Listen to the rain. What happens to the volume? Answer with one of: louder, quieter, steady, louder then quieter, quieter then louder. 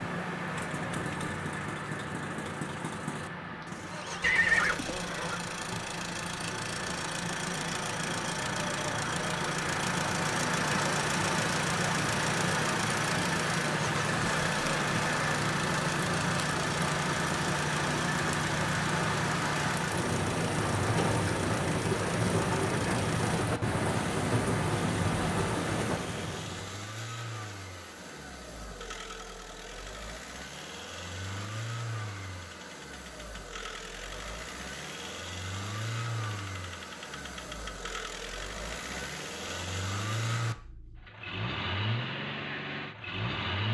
louder.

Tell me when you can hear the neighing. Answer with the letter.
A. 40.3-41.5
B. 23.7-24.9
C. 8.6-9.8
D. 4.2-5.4
D.